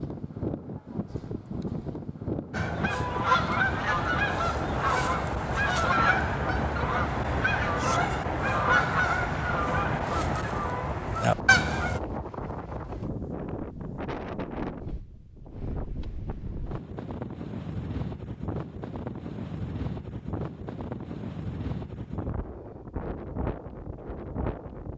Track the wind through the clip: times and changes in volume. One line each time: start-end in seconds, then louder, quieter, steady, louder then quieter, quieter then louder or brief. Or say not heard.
0.0-24.9 steady.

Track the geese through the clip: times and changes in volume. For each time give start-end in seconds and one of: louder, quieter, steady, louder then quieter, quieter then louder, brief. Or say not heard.
2.5-12.0 steady.